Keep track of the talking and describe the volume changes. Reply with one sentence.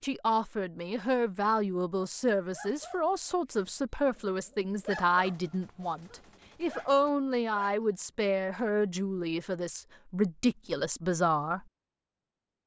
The volume of the talking stays about the same.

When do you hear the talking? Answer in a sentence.
You can hear the talking from 0.0 to 11.7 s.